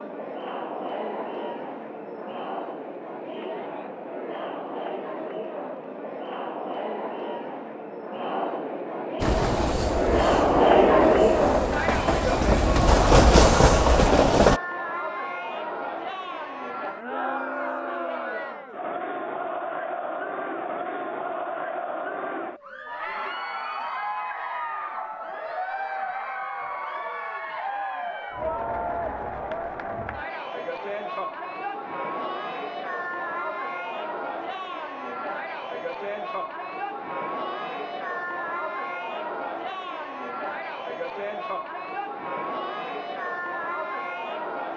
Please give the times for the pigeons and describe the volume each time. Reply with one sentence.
You can't hear the pigeons here.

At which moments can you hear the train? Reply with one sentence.
The train can be heard from 9.2 to 14.6 s.